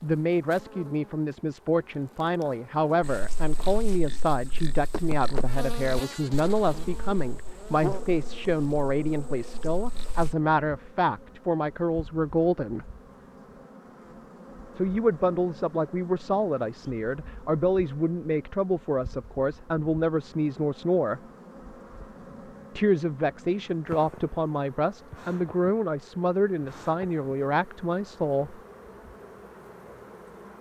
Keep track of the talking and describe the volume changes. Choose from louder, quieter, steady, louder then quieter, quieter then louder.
steady.